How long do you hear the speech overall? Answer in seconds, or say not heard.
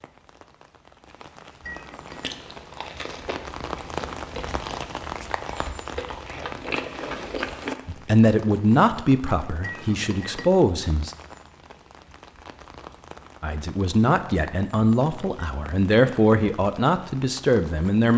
8 s.